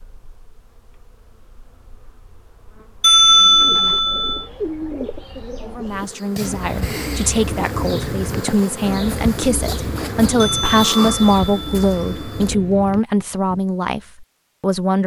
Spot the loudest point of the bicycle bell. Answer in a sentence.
The loudest moment of the bicycle bell is at 3 seconds.